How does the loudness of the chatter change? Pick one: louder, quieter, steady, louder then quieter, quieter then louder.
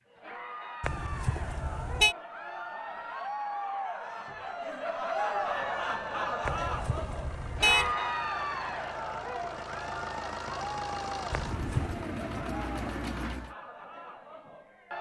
louder then quieter.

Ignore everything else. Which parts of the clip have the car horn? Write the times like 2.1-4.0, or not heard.
0.8-2.1, 6.5-8.0, 11.3-12.0.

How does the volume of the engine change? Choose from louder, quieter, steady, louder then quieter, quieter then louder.
louder.